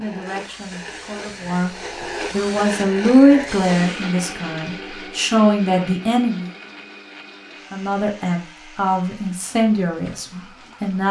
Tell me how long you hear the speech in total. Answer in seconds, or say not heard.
10 s.